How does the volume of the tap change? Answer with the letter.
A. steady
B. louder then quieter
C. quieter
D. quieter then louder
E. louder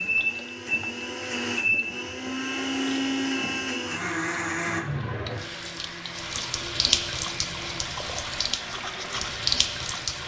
E.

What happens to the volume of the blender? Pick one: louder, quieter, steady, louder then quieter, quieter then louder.
quieter.